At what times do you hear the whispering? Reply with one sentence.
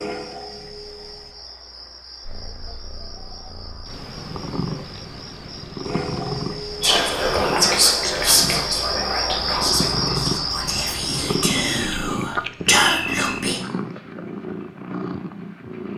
You can hear the whispering from 6.8 to 13.6 s.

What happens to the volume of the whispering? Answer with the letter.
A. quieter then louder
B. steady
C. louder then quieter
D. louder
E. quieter
A.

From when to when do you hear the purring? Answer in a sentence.
The purring can be heard from 2.2 to 15.9 s.